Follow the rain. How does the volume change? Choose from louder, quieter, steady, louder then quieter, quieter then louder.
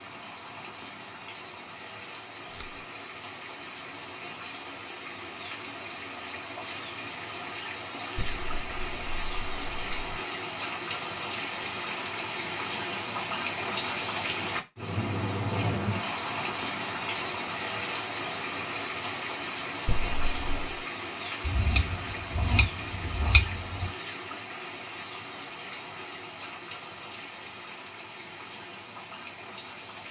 louder then quieter.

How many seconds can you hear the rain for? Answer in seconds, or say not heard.
30 s.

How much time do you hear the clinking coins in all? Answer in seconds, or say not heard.
3 s.